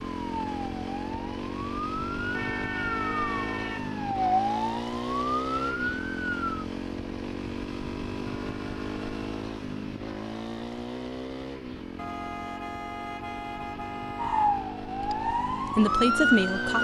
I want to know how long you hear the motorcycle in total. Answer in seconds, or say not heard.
17 s.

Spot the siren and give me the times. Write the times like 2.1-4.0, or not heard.
0.2-6.7, 14.2-16.8.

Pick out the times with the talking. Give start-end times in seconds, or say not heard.
15.0-16.8.